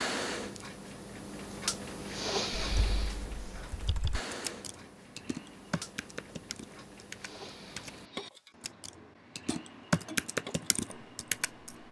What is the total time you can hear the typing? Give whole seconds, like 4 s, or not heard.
9 s.